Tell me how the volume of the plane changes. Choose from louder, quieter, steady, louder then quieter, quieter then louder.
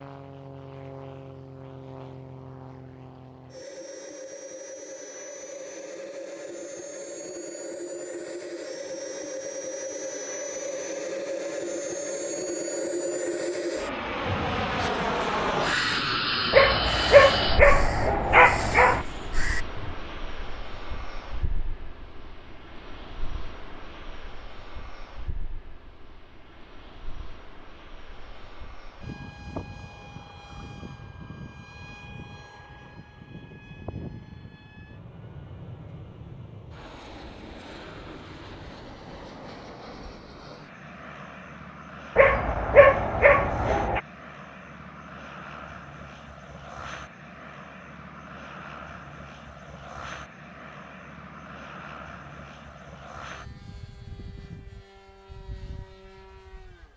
louder then quieter.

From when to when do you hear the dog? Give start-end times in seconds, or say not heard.
16.5-19.1, 42.1-44.0.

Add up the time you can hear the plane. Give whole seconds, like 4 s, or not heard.
57 s.